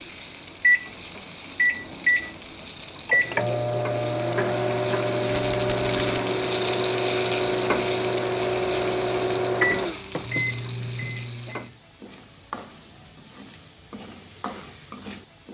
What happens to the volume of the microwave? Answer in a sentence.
The volume of the microwave stays about the same.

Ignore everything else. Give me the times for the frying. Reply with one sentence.
You can hear the frying from 0.0 to 15.4 s.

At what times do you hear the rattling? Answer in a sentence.
You can hear the rattling from 5.3 to 6.2 s.